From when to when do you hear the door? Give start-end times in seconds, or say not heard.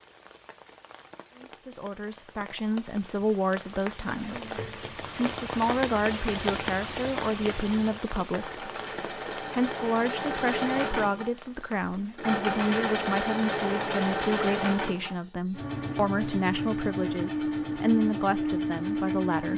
not heard.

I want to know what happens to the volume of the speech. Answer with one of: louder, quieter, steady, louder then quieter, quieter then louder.
steady.